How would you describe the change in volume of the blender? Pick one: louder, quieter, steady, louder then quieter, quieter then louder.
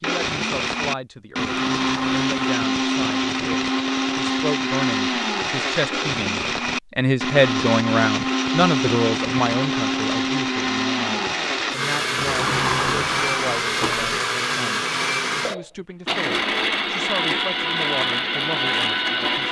steady.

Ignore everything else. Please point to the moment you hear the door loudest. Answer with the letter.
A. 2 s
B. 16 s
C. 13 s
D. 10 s
C.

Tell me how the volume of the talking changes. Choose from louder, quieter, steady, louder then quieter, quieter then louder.
louder then quieter.